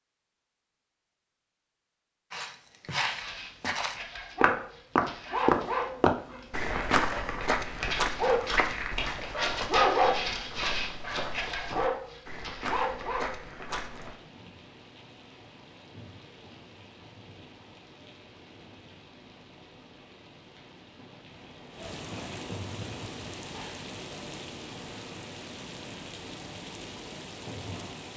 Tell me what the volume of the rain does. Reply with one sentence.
The volume of the rain goes up.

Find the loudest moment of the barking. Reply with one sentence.
The loudest moment of the barking is at 10 seconds.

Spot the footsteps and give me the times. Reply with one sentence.
You can hear the footsteps from 2.3 to 14.2 s.